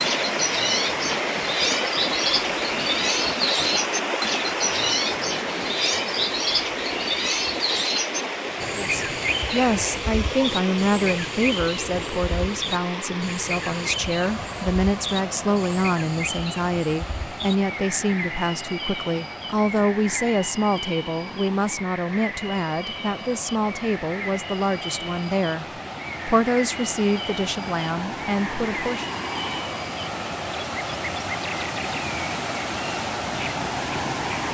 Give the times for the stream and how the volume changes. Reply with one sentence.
The stream can be heard from 0.0 to 34.4 s, getting quieter then louder.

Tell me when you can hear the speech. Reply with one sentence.
You can hear the speech from 8.8 to 25.6 s and from 26.2 to 29.1 s.